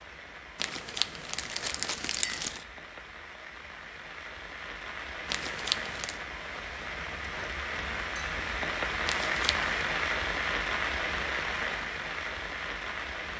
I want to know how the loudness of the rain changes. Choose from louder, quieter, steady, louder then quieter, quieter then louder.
louder.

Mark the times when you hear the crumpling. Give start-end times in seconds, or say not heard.
0.6-2.6, 5.2-6.2, 9.1-9.7.